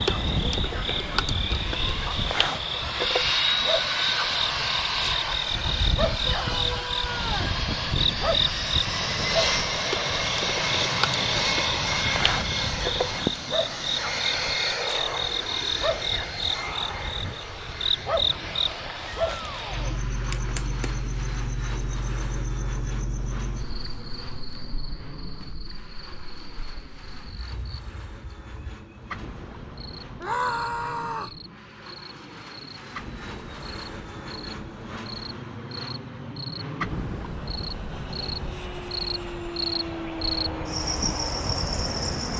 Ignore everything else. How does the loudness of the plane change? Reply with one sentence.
The loudness of the plane goes down, then up.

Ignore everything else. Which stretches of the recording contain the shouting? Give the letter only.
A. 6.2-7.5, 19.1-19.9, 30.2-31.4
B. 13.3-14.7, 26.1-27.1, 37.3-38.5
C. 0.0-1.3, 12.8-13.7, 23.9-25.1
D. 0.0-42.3
A.